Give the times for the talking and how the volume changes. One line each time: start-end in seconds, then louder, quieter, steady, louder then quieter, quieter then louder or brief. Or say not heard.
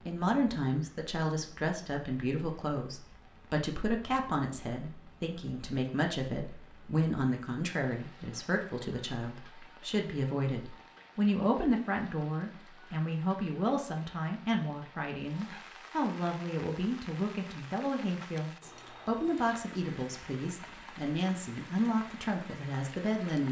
0.1-23.4 steady.